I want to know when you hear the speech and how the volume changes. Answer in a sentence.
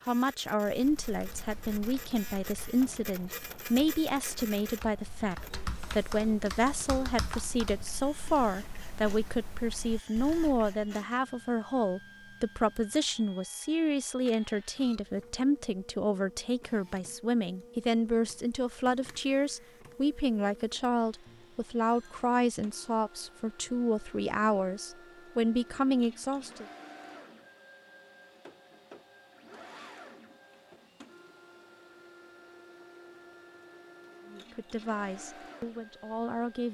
You can hear the speech from 0.1 to 26.6 s, at a steady volume; and briefly from 34.3 to 36.6 s.